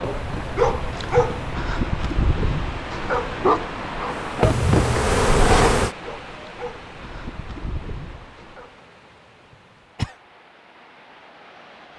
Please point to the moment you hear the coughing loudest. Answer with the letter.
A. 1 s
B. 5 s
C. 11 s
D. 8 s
B.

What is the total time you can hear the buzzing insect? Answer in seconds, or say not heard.
2 s.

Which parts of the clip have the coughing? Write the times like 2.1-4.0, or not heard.
0.0-1.5, 4.4-5.0, 9.5-10.2.